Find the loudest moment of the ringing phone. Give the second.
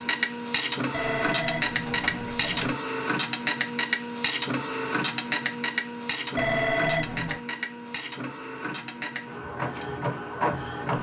7 s.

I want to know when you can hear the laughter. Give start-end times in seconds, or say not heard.
not heard.